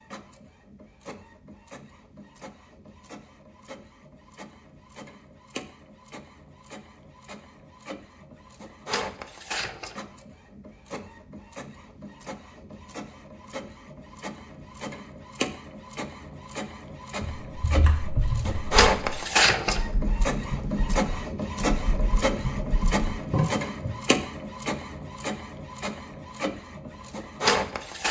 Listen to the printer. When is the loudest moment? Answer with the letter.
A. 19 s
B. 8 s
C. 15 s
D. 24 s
A.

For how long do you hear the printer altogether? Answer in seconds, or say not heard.
28 s.